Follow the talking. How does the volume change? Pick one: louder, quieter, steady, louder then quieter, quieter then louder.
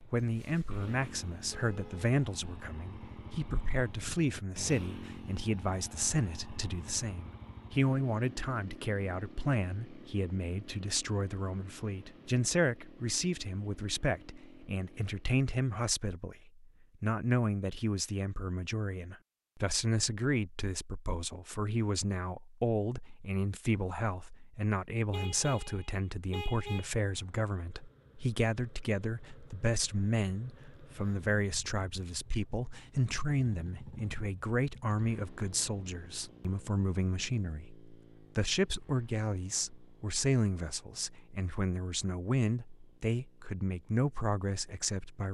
steady.